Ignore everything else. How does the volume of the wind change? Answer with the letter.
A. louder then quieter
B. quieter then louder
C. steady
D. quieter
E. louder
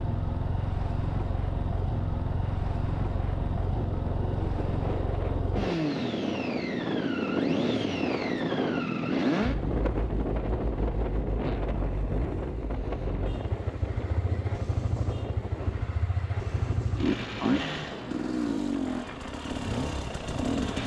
A.